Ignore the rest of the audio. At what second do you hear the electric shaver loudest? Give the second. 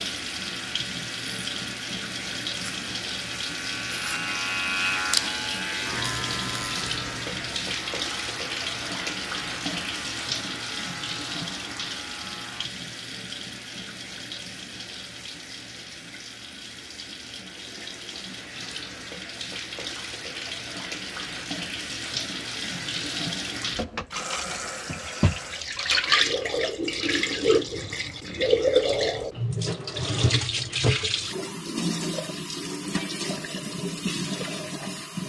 5 s.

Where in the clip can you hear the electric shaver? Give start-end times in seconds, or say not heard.
0.1-12.7.